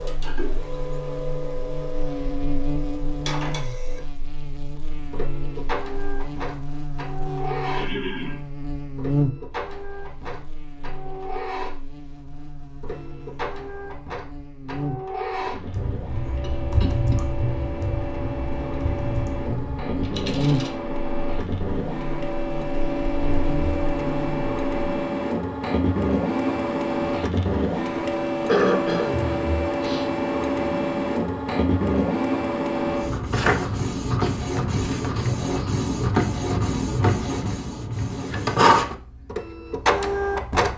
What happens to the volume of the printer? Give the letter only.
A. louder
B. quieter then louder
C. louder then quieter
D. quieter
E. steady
A.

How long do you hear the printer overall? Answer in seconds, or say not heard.
41 s.